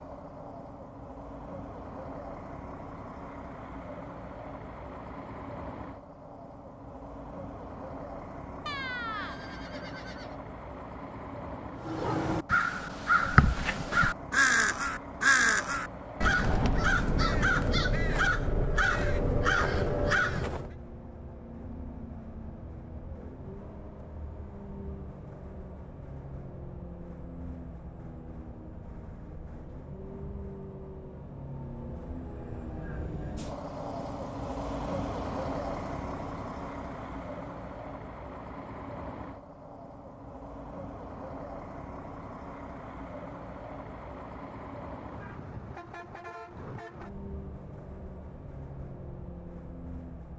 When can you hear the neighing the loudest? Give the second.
9 s.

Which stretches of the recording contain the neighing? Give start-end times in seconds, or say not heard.
8.7-10.3.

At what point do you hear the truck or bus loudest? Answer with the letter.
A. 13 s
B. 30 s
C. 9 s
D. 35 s
D.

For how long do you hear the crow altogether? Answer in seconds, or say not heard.
9 s.